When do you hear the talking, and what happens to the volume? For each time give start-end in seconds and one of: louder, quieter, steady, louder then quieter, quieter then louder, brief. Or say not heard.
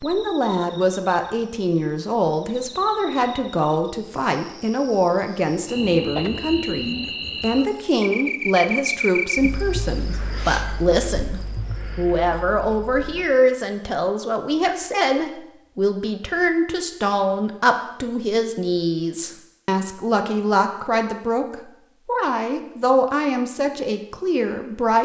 0.0-25.0 steady.